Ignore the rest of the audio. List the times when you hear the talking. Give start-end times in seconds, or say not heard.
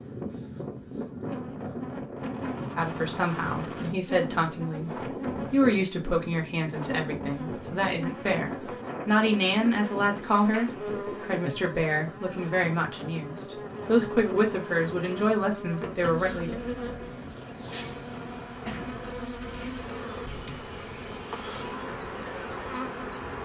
2.8-16.6.